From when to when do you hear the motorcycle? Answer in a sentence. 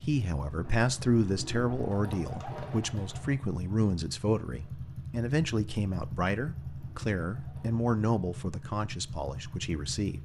You can hear the motorcycle from 0.0 to 10.2 s.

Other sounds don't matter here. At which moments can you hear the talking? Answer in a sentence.
The talking can be heard from 0.0 to 10.2 s.